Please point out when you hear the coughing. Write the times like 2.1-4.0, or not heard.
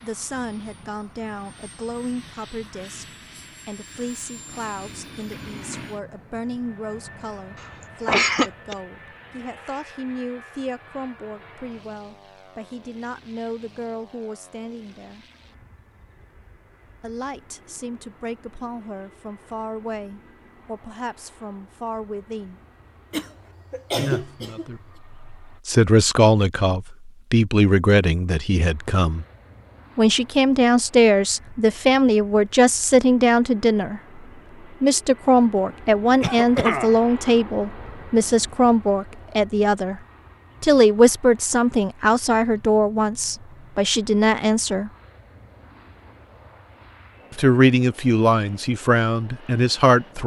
7.6-8.8, 23.1-24.6, 36.2-37.0.